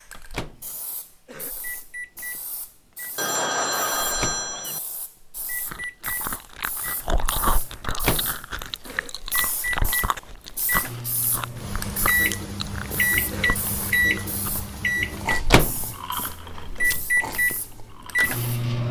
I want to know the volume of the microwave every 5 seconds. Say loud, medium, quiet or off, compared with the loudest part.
quiet, medium, loud, loud.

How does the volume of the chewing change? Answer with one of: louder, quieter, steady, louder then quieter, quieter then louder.
quieter.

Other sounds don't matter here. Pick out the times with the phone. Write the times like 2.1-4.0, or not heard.
3.1-4.8.